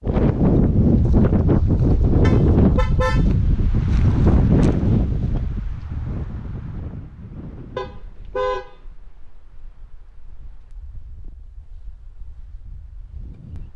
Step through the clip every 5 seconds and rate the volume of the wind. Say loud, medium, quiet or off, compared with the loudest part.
loud, quiet, quiet.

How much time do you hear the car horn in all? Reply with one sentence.
You can hear the car horn for 2 seconds altogether.